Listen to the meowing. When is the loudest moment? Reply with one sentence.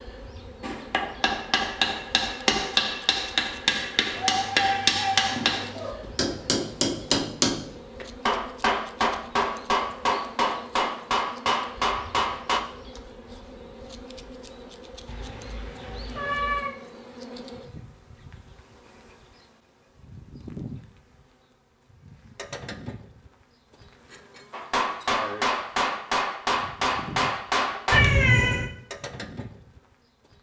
The volume of the meowing peaks at 28 seconds.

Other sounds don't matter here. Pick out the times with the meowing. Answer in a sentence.
The meowing can be heard from 4.1 to 6.0 s, from 15.1 to 16.8 s and from 27.9 to 28.7 s.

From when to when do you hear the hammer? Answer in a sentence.
The hammer can be heard from 0.6 to 12.6 s and from 24.5 to 28.0 s.